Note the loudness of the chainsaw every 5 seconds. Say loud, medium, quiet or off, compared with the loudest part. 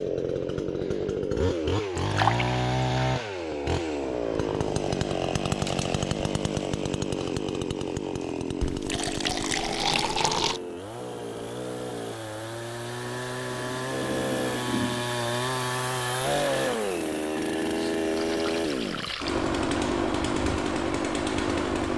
loud, loud, medium, loud, loud.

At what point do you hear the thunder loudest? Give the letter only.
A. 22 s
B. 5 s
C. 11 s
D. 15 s
D.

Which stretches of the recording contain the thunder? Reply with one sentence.
The thunder can be heard from 13.5 to 15.2 s.